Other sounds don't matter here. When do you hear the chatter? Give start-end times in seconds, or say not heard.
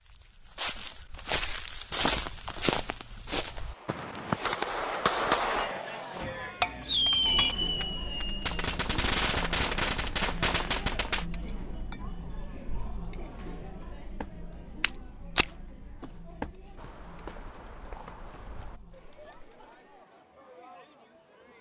5.0-21.5.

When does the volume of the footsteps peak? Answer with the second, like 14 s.
2 s.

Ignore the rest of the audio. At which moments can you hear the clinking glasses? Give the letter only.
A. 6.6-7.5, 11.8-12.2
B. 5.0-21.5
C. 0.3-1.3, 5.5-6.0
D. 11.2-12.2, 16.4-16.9
A.